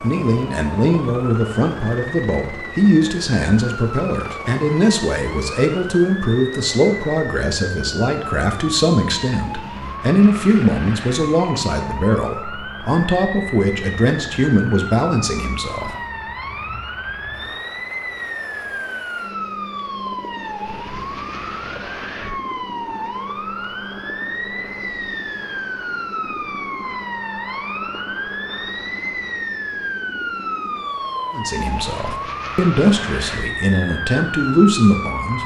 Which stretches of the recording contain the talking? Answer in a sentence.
You can hear the talking from 0.0 to 15.9 s and from 31.3 to 35.4 s.